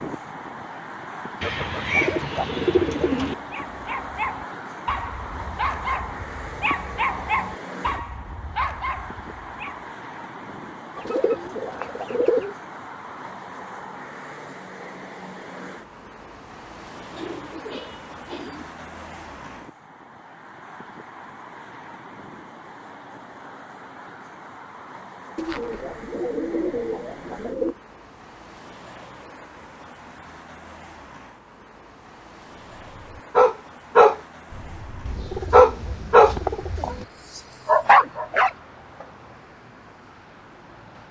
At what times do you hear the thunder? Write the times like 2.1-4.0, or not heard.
not heard.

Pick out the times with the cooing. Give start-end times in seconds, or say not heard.
1.4-3.4, 10.9-12.6, 17.1-18.6, 25.4-27.8, 35.0-37.0.